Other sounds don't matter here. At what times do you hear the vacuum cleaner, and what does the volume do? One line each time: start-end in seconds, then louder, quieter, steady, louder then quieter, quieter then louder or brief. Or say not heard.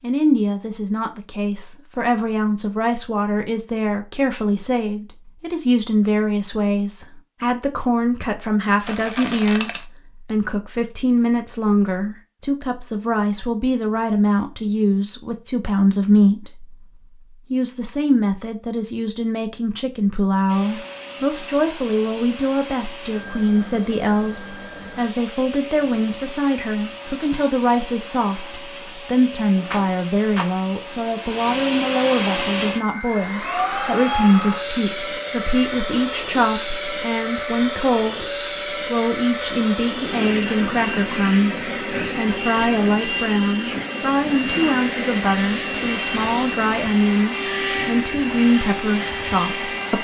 20.4-49.9 louder.